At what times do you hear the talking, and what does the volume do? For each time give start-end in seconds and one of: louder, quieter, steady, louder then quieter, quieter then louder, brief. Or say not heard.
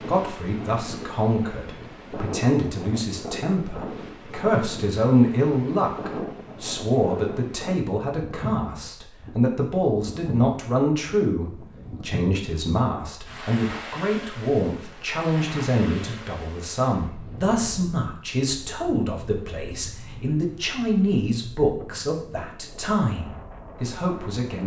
0.1-24.6 steady.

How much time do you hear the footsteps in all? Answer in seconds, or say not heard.
not heard.